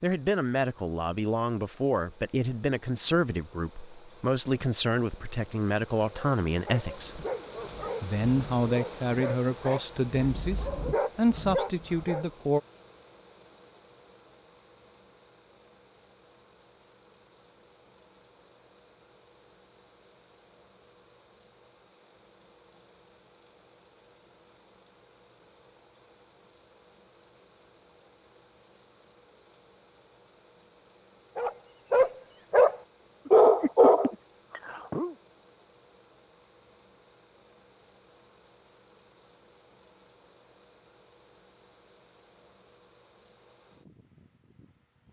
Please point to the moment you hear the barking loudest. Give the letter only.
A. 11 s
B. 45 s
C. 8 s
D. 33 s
D.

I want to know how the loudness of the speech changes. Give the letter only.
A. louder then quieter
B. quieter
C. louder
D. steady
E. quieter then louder
D.